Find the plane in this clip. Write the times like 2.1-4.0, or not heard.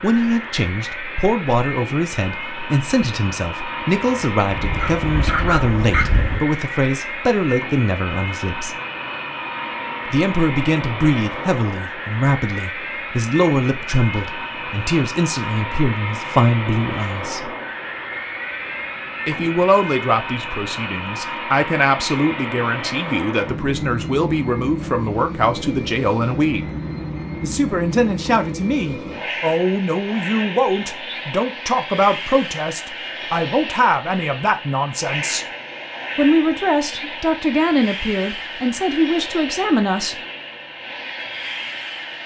0.0-42.2.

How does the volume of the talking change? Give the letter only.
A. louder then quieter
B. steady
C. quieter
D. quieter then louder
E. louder
B.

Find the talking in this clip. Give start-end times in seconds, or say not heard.
0.0-8.8, 10.1-17.5, 19.2-26.6, 27.4-35.5, 36.1-40.1.